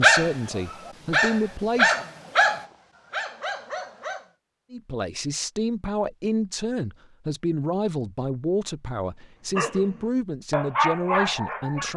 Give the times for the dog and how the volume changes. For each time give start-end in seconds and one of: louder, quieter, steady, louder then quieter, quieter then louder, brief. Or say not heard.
0.0-4.2 louder then quieter
9.6-11.9 brief.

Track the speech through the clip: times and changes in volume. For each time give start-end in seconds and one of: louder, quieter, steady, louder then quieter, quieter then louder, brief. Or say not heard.
0.0-2.0 brief
4.7-11.9 steady.